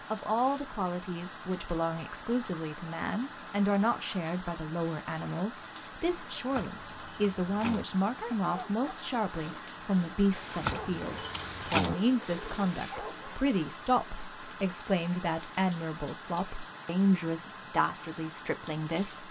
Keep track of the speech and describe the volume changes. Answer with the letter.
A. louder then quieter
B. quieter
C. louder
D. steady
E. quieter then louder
D.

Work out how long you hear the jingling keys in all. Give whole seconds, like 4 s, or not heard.
3 s.